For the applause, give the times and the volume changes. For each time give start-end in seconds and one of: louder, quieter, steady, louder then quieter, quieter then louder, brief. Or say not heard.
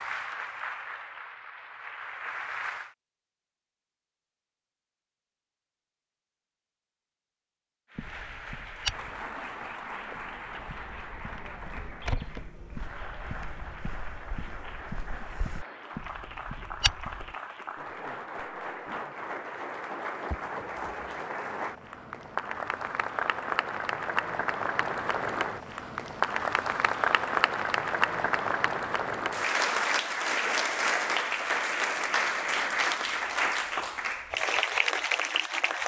0.0-3.0 brief
7.9-35.8 louder.